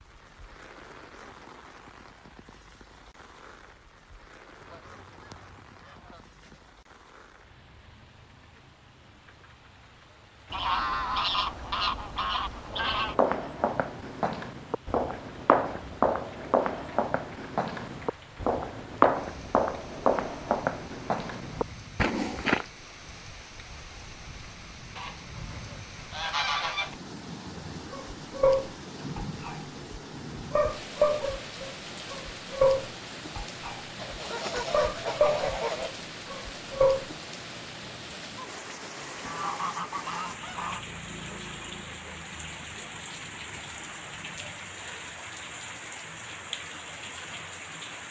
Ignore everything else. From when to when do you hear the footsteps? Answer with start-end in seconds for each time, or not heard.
12.7-22.6.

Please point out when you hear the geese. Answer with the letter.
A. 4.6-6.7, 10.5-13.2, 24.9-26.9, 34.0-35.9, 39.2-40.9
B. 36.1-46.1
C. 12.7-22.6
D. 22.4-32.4
A.